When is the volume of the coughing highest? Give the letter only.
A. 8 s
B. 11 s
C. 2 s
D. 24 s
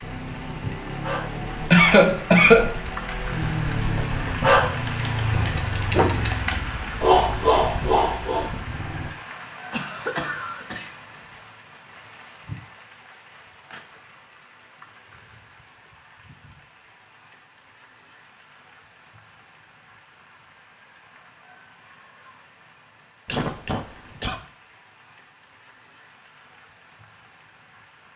C.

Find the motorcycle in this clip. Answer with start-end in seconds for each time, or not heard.
0.0-9.2.